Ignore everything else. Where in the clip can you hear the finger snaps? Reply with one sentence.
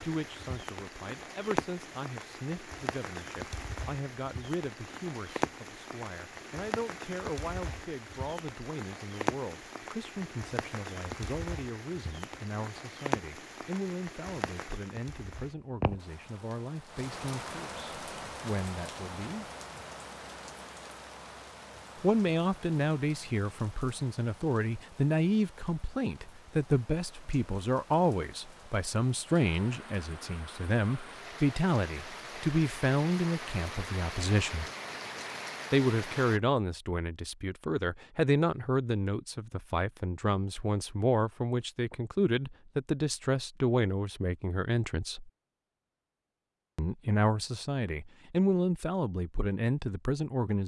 The finger snaps can't be heard in this clip.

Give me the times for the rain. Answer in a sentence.
You can hear the rain from 0.0 to 36.4 s.